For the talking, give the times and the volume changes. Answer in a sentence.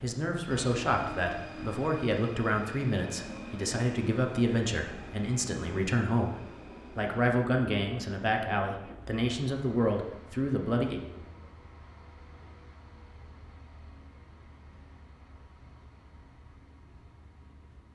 The talking can be heard from 0.0 to 11.0 s, at a steady volume.